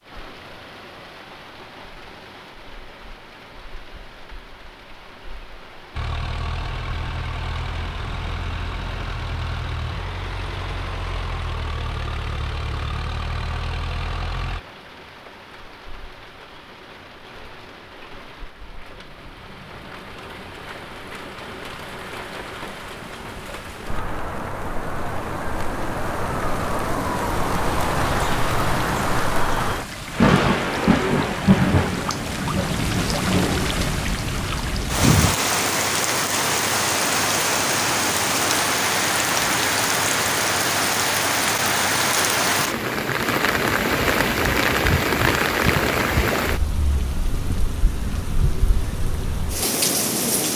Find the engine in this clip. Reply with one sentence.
You can hear the engine from 5.9 to 14.6 s.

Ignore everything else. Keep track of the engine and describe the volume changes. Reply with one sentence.
The loudness of the engine stays about the same.